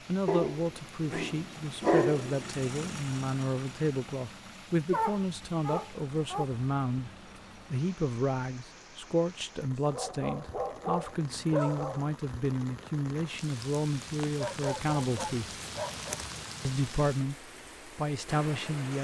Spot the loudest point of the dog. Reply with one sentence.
The volume of the dog peaks at 2 seconds.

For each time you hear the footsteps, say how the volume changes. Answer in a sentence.
The footsteps can't be heard in this clip.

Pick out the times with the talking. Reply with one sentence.
The talking can be heard from 0.1 to 7.1 s, from 7.7 to 15.6 s and from 16.6 to 18.9 s.